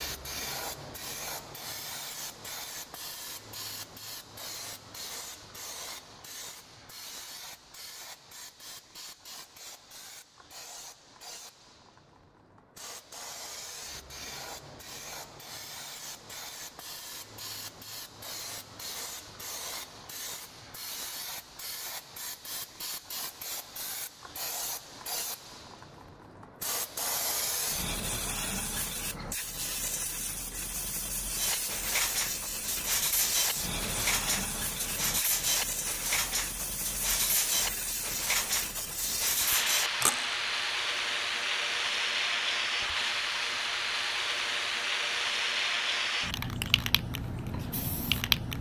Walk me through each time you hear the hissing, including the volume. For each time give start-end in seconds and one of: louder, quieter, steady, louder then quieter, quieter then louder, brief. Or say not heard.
0.0-48.5 louder.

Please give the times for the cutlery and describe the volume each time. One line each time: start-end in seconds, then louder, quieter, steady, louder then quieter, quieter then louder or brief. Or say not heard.
31.3-40.4 steady.